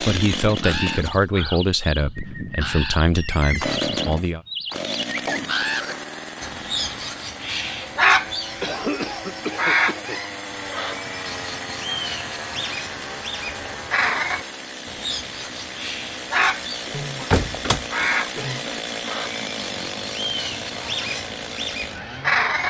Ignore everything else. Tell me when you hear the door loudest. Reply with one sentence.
The loudest moment of the door is at 17 seconds.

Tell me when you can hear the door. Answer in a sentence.
You can hear the door from 3.1 to 3.8 s and from 16.9 to 18.1 s.